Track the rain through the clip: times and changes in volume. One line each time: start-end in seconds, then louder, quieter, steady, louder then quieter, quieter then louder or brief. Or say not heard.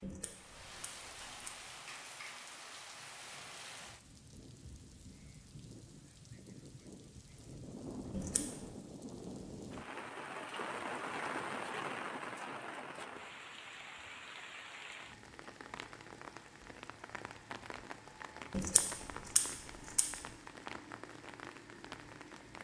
0.0-22.5 louder then quieter.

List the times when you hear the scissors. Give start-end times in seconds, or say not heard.
0.0-1.6, 8.1-8.6, 18.5-20.2.